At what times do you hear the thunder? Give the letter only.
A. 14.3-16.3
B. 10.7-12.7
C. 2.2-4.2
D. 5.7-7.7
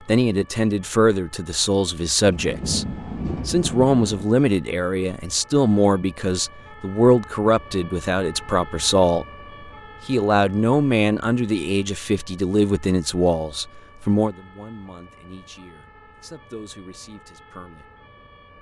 C.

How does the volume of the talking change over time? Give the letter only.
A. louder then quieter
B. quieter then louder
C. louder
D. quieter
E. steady
D.